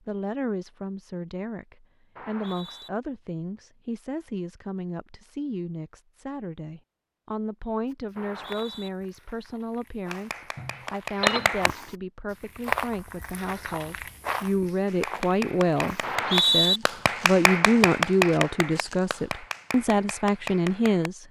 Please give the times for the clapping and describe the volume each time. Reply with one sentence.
The clapping can be heard briefly from 10.1 to 11.7 s; and from 14.8 to 21.1 s, getting louder then quieter.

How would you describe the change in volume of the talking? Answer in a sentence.
The loudness of the talking goes up.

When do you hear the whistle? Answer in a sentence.
You can hear the whistle from 2.1 to 2.9 s, from 8.2 to 8.9 s and from 16.0 to 16.8 s.